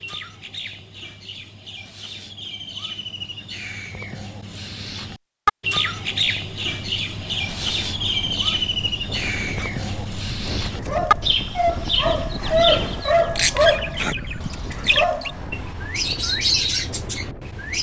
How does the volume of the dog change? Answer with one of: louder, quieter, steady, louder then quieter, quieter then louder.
louder then quieter.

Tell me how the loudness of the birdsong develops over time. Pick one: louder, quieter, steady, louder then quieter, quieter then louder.
louder.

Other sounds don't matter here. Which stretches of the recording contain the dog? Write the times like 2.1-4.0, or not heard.
9.6-15.4.